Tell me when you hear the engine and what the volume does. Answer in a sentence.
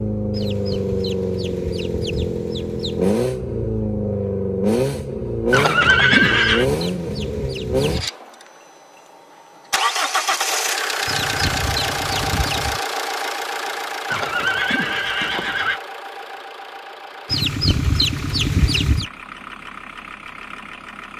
The engine can be heard from 0.0 to 21.1 s, getting quieter.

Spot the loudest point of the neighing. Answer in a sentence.
The volume of the neighing peaks at 6 seconds.